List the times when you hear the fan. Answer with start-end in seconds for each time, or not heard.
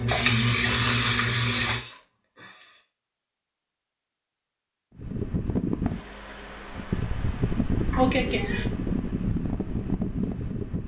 5.0-10.8.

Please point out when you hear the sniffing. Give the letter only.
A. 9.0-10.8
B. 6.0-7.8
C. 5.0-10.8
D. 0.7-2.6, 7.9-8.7
D.